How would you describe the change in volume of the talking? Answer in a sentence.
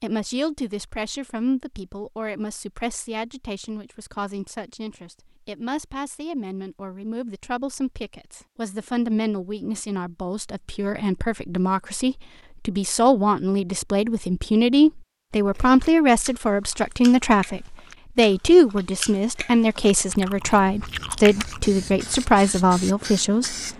The volume of the talking goes up.